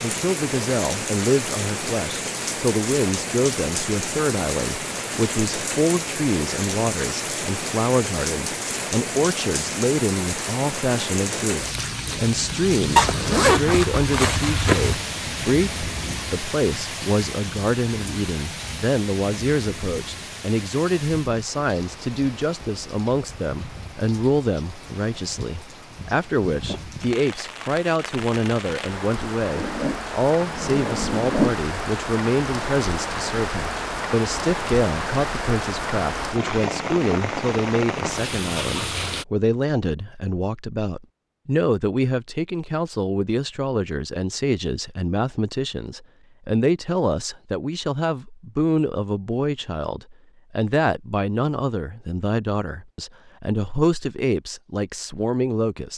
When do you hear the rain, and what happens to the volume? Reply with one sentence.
The rain can be heard from 0.0 to 39.2 s, getting quieter then louder.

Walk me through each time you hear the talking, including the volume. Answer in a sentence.
You can hear the talking from 0.0 to 55.9 s, at a steady volume.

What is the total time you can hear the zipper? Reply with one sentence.
You can hear the zipper for 4 seconds altogether.